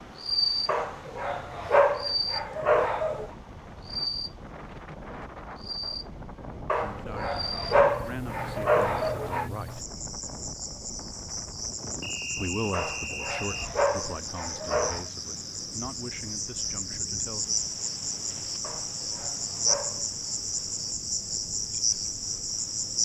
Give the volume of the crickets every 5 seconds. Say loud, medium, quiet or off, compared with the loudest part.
loud, medium, medium, loud, loud.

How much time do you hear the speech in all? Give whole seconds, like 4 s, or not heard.
8 s.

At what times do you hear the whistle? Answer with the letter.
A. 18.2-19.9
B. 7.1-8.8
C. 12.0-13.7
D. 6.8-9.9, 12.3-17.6
C.